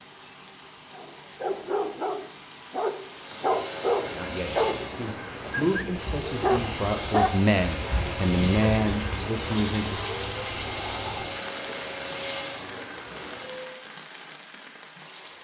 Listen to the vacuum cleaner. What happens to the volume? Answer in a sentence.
The loudness of the vacuum cleaner stays about the same.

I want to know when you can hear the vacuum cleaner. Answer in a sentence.
The vacuum cleaner can be heard from 3.1 to 13.8 s.